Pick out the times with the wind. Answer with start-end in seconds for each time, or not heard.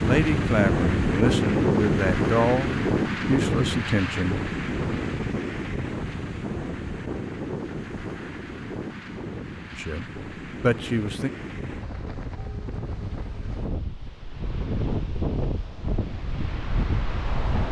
0.0-17.6.